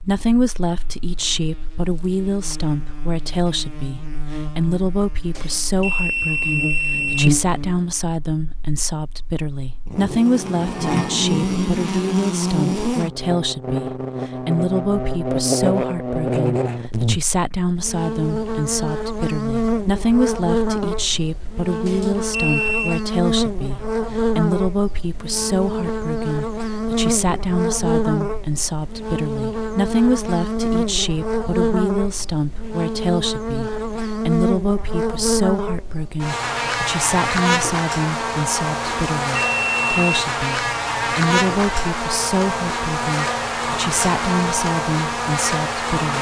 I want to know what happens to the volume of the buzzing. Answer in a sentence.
The volume of the buzzing goes up.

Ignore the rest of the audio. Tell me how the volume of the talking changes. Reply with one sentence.
The volume of the talking stays about the same.